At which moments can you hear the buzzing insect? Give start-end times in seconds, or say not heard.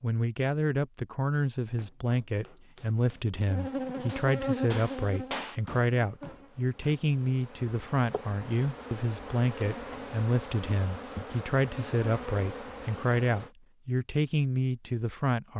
3.5-13.5.